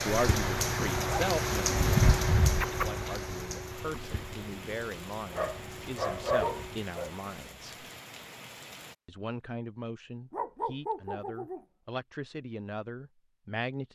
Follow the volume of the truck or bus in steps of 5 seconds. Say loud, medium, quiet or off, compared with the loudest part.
loud, medium, off.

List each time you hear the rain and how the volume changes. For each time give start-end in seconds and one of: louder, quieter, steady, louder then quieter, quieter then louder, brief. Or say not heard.
0.0-8.9 quieter.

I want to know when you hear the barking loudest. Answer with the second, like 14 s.
2 s.